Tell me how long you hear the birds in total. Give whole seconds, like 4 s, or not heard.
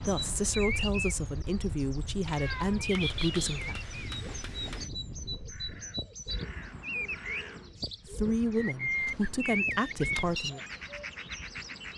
12 s.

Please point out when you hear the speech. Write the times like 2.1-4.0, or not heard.
0.0-3.8, 8.1-10.6.